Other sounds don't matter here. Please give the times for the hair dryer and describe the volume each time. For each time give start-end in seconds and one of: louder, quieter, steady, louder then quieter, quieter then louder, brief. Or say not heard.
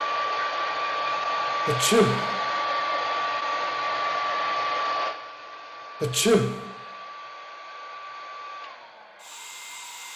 0.0-10.1 quieter.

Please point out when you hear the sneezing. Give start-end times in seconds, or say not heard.
1.6-2.3, 6.0-6.7.